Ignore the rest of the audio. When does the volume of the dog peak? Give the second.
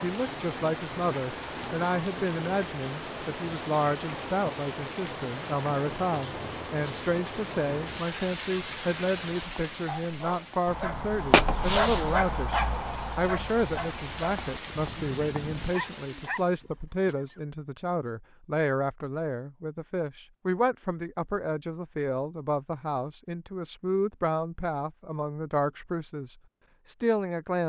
11 s.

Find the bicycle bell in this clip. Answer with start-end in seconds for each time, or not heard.
not heard.